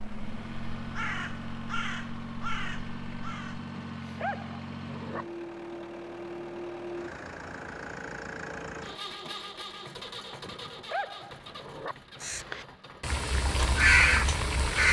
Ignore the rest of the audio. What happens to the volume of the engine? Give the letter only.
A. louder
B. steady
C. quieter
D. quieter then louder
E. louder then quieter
C.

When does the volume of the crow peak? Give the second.
14 s.